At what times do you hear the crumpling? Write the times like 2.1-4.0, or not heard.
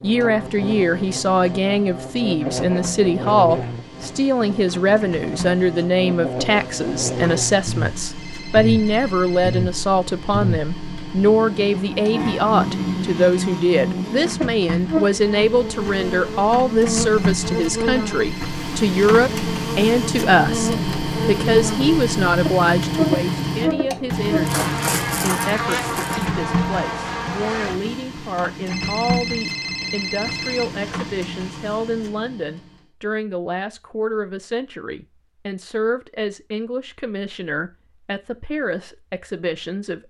24.4-26.2.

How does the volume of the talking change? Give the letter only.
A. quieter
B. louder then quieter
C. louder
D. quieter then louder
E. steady
A.